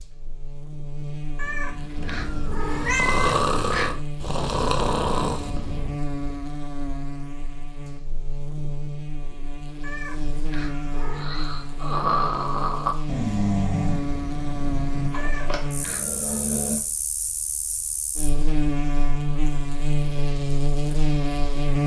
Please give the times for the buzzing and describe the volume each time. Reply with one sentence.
The buzzing can be heard from 0.0 to 21.8 s, getting louder.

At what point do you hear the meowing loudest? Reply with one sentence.
The loudest moment of the meowing is at 3 seconds.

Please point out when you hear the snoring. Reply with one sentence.
The snoring can be heard from 1.9 to 6.0 s and from 11.1 to 16.8 s.